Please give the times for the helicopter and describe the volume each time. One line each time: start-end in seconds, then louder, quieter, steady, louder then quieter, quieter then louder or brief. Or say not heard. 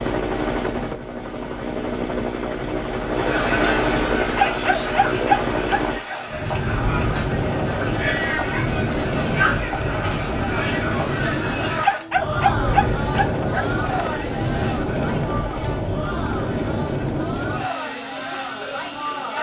0.0-19.3 steady.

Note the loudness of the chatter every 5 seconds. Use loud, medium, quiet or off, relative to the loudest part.
loud, loud, loud, medium.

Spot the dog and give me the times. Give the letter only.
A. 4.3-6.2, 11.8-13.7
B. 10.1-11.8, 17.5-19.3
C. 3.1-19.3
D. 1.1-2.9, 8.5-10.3
A.